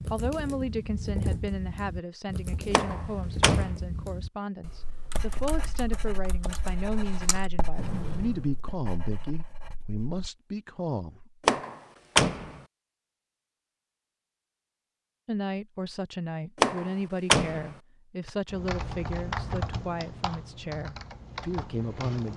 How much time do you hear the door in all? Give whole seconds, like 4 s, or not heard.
3 s.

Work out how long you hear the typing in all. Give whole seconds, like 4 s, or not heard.
13 s.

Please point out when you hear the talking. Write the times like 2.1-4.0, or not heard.
0.1-11.4, 15.2-22.3.